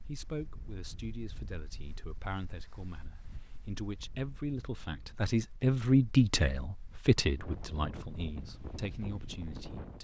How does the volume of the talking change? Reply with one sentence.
The volume of the talking goes up, then down.